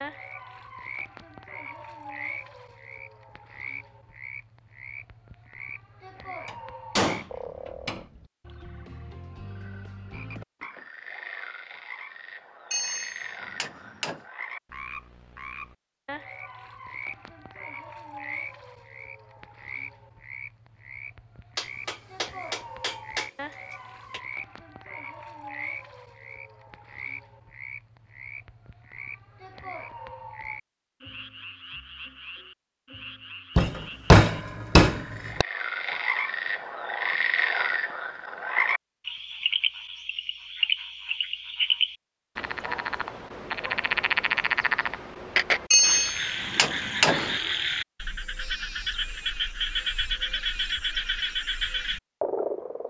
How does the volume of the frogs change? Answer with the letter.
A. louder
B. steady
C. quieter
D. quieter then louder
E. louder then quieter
A.